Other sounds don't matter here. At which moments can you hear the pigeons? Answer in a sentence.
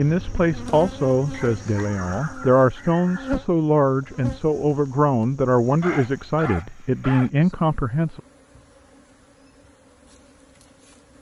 The pigeons can't be heard in this clip.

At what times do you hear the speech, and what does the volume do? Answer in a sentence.
The speech can be heard from 0.0 to 8.2 s, at a steady volume.